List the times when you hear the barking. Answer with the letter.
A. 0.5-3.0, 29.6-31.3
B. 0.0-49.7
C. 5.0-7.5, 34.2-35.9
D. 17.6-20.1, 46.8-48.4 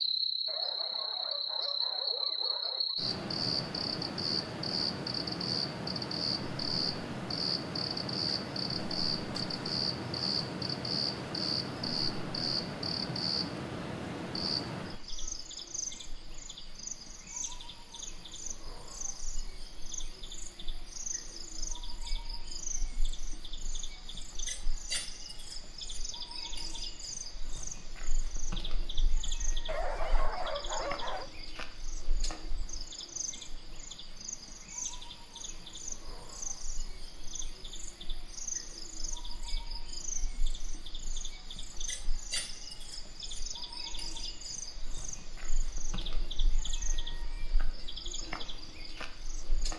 A.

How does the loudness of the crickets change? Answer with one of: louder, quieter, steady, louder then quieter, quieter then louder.
quieter.